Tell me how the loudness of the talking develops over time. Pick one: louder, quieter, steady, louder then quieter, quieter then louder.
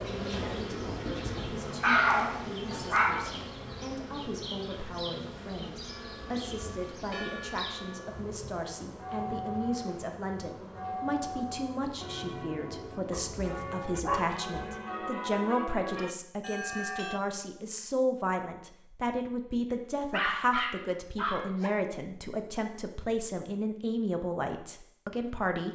louder.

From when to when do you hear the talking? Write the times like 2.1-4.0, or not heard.
0.1-25.7.